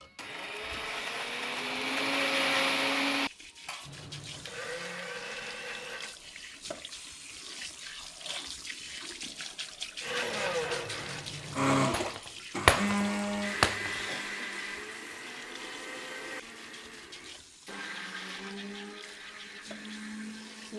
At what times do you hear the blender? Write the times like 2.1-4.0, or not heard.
0.0-6.2, 10.0-20.7.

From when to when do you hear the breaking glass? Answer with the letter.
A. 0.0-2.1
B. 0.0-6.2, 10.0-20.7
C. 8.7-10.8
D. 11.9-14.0
D.